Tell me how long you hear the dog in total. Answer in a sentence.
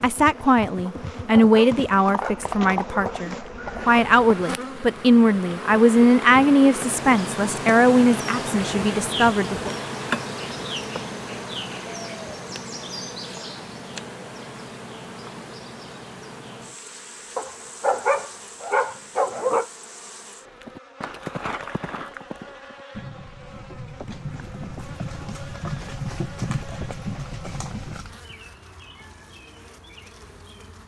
The dog can be heard for 5 seconds in total.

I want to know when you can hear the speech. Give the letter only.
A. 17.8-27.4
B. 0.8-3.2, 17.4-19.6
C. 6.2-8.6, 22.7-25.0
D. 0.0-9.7
D.